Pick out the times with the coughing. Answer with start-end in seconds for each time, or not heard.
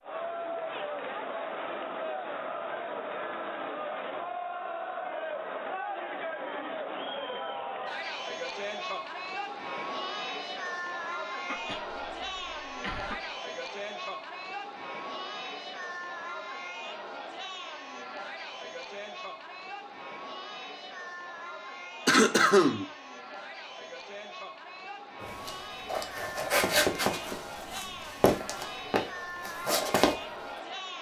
11.4-13.2, 22.1-22.9.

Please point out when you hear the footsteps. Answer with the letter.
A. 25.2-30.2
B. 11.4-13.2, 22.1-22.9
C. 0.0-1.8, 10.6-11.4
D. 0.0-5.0
A.